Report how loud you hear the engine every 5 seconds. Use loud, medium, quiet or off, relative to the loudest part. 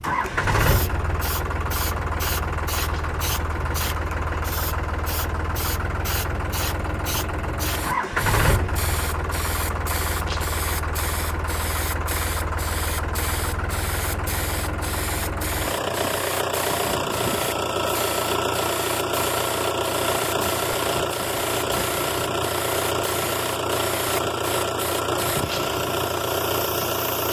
loud, loud, medium, loud, loud, loud.